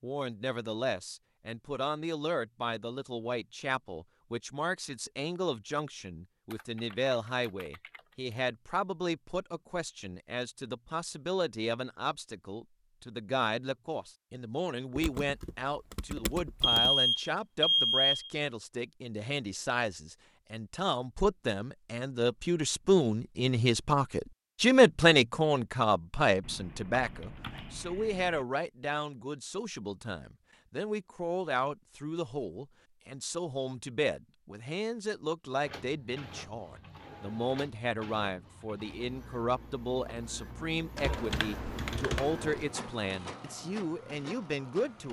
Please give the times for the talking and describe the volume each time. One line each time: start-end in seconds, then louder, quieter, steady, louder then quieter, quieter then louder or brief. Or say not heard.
0.0-45.0 louder then quieter.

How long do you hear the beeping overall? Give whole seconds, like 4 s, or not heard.
2 s.